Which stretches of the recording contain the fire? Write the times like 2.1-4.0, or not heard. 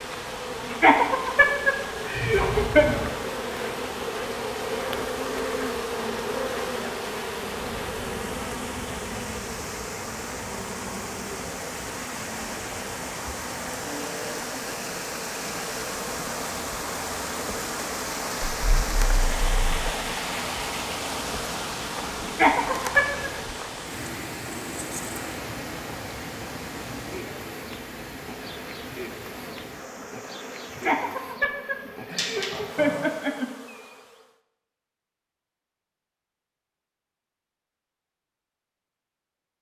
not heard.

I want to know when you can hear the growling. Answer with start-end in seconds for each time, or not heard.
2.1-3.1, 18.6-19.9, 32.1-33.0.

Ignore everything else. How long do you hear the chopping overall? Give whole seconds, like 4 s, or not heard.
not heard.